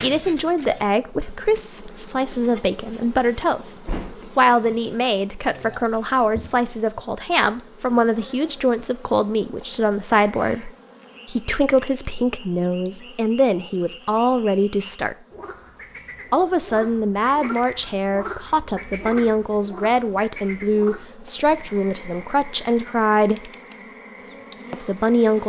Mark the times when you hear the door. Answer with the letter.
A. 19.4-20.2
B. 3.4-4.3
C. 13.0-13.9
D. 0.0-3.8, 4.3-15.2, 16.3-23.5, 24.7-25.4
B.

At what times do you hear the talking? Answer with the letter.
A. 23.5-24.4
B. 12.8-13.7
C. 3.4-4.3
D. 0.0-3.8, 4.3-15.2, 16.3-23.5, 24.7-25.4
D.